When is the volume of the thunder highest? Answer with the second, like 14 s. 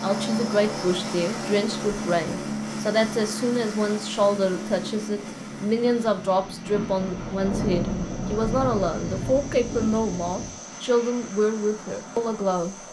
8 s.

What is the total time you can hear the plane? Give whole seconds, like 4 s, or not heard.
13 s.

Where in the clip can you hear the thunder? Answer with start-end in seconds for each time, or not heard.
6.7-10.5.